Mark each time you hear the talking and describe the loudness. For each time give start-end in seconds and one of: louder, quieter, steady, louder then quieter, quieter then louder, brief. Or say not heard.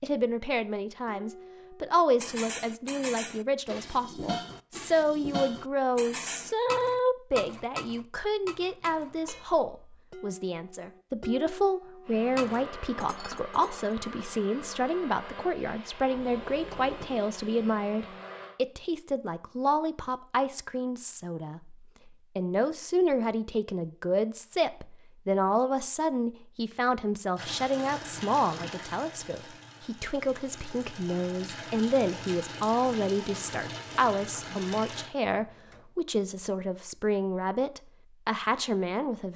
0.0-39.3 steady.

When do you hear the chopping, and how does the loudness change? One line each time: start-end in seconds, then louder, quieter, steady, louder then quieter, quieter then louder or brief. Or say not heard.
not heard.